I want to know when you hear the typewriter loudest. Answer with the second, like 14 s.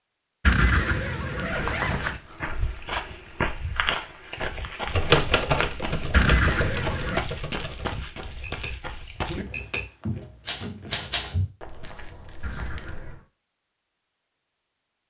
5 s.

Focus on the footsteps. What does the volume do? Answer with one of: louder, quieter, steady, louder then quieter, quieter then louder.
quieter.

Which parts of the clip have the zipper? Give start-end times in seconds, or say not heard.
0.4-2.2, 6.1-7.2, 12.4-13.2.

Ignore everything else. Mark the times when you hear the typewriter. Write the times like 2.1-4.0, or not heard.
4.9-11.3.